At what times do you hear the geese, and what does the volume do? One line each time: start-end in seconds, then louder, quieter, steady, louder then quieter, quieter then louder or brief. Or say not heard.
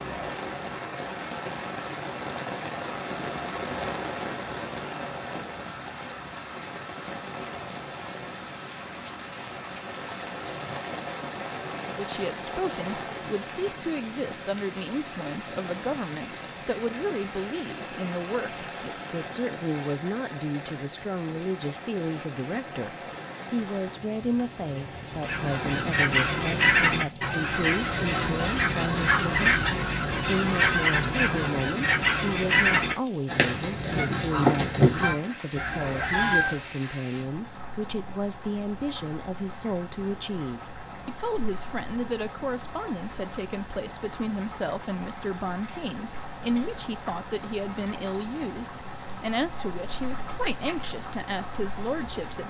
25.1-36.6 steady.